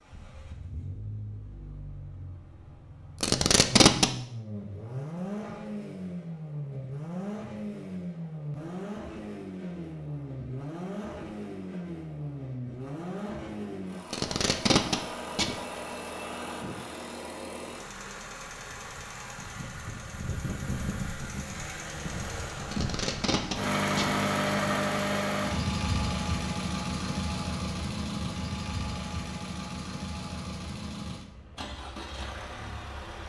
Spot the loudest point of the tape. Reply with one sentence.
The volume of the tape peaks at 4 seconds.